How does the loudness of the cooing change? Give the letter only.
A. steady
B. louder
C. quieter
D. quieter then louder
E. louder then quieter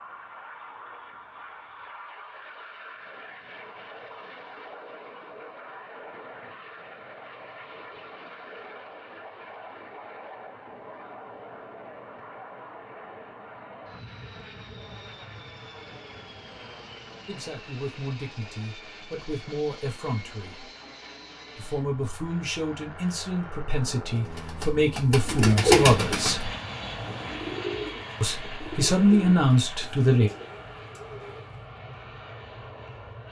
C.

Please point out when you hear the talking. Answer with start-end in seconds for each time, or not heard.
17.2-20.7, 21.6-26.5, 28.2-30.3.